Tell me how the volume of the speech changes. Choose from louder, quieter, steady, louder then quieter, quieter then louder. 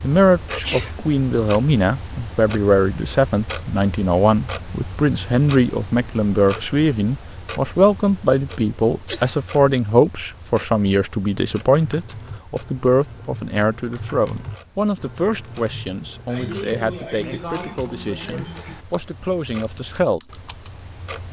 quieter.